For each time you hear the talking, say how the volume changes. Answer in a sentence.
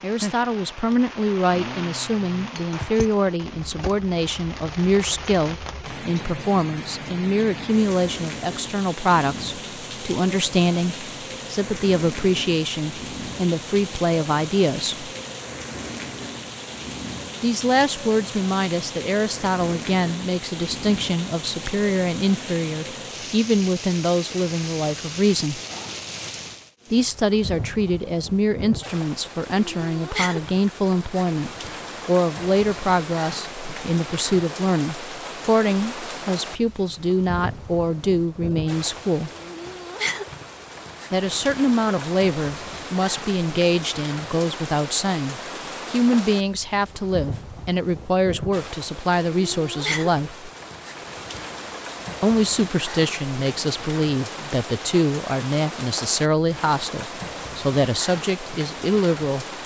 The talking can be heard from 0.0 to 15.1 s, at a steady volume; from 17.4 to 25.6 s, at a steady volume; from 26.9 to 39.3 s, at a steady volume; from 41.1 to 50.5 s, at a steady volume; and from 52.2 to 59.5 s, at a steady volume.